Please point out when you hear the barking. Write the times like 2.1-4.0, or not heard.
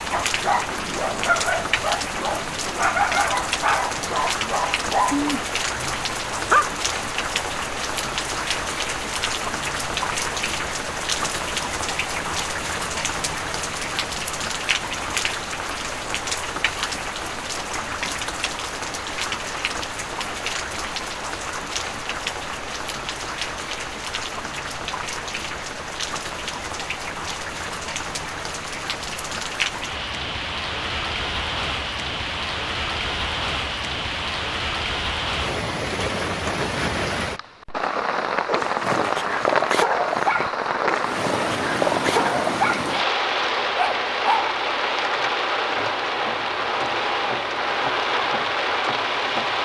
0.1-6.7, 38.5-44.5.